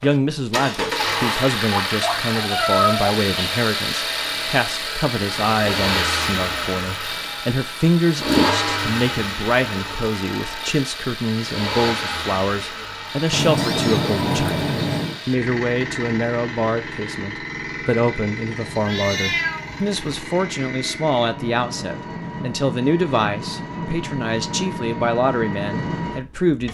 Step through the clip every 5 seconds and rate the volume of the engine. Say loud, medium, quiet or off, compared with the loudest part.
loud, loud, medium, medium, medium, medium.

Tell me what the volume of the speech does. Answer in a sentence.
The volume of the speech stays about the same.